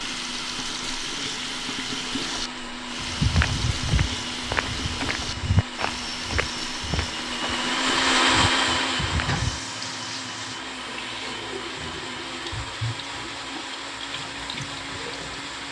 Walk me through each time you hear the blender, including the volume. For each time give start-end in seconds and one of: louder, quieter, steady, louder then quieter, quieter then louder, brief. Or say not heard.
0.0-15.6 louder then quieter.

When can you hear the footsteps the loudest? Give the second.
3 s.